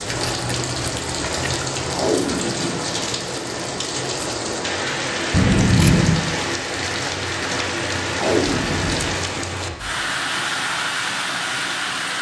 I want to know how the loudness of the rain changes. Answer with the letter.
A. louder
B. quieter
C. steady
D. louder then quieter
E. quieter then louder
C.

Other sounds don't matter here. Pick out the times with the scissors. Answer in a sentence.
You can hear the scissors from 0.1 to 2.1 s, from 5.3 to 6.2 s and from 8.6 to 9.2 s.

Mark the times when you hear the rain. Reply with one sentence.
The rain can be heard from 0.0 to 12.1 s.